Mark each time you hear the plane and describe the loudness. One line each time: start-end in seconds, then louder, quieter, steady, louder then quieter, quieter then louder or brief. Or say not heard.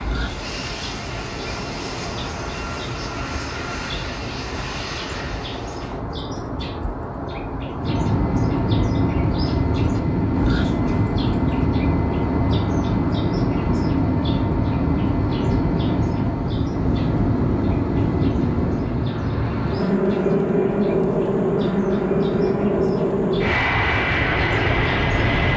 0.0-25.5 louder.